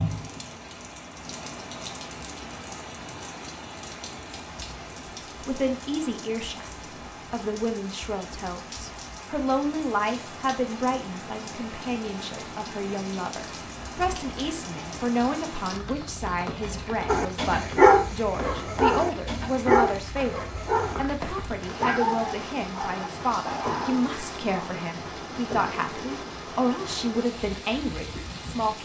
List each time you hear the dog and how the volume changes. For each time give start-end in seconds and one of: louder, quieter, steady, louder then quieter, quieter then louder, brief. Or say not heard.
17.1-24.8 quieter.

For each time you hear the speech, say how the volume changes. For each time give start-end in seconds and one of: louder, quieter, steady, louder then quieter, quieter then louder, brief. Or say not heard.
4.9-6.7 brief
7.3-28.8 steady.